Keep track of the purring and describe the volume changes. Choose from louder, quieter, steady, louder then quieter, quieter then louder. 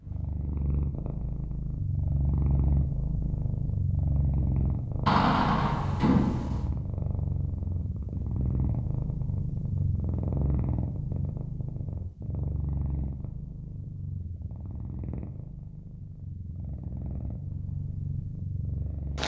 quieter.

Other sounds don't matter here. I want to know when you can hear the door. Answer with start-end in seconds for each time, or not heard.
5.0-6.7.